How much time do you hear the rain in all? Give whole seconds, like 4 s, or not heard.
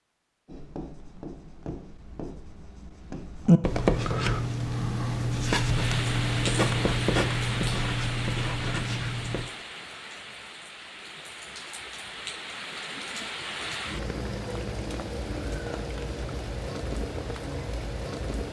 13 s.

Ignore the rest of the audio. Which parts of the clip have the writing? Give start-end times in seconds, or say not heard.
0.5-9.5.